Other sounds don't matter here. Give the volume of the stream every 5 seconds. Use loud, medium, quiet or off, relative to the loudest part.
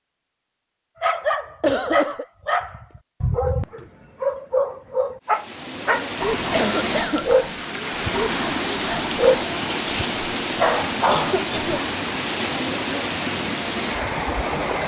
off, loud, loud.